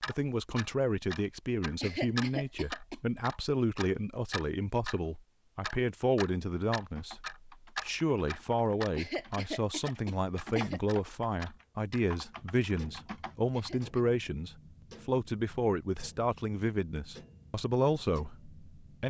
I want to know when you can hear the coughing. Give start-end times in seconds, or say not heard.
1.8-3.0, 8.9-10.8, 13.5-14.2.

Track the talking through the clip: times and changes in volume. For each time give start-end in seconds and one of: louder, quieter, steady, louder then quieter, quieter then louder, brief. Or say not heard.
0.1-19.0 steady.